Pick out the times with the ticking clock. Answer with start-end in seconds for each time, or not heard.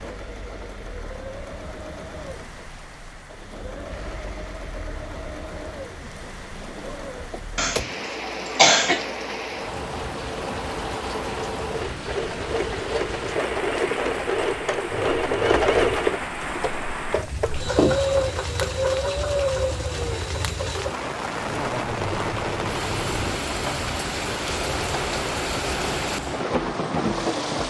not heard.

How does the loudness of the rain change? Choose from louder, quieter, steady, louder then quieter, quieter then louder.
louder.